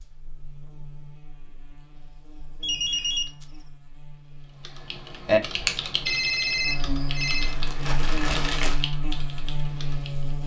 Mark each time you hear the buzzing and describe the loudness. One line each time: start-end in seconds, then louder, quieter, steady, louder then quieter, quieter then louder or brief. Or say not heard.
0.0-10.4 louder.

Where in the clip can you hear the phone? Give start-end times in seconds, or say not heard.
2.6-3.5, 6.0-7.5.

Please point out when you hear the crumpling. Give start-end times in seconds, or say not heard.
7.2-8.8.